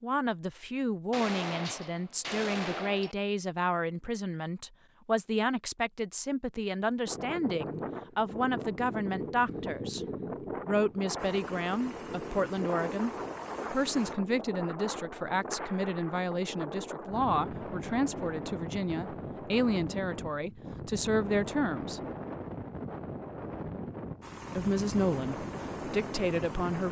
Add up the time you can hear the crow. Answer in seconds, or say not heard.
not heard.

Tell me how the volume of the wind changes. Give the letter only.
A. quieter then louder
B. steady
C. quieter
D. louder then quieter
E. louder
B.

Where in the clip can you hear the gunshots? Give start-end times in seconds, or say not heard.
1.1-3.1.